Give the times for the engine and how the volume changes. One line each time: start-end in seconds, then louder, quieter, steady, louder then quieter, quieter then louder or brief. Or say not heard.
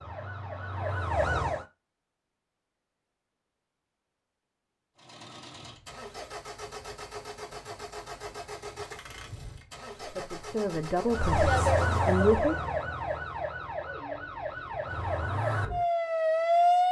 5.0-12.2 steady.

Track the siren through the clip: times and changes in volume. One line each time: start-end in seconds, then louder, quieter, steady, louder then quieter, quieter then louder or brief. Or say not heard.
0.0-1.6 brief
11.1-16.8 quieter then louder.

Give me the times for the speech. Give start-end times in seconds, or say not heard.
10.1-12.7.